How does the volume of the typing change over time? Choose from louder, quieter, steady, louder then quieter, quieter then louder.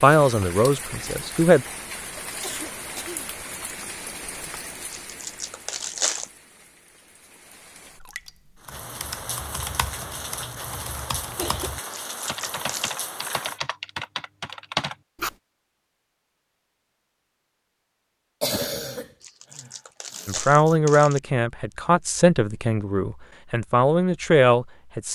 louder.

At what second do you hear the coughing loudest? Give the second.
19 s.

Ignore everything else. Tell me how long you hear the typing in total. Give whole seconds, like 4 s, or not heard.
7 s.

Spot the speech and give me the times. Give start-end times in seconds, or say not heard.
0.0-1.6, 20.2-25.1.